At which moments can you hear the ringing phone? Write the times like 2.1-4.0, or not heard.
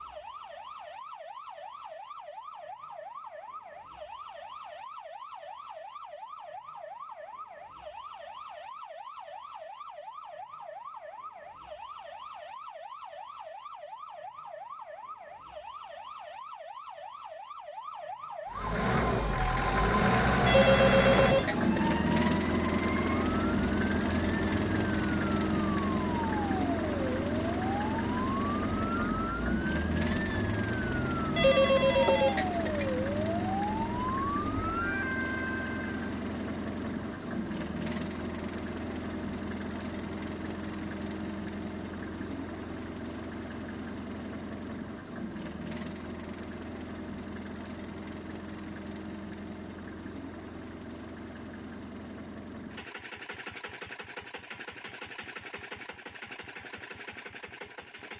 20.4-21.9, 31.4-32.9.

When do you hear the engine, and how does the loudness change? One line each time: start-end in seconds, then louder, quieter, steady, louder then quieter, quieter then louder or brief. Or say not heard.
18.5-58.1 quieter.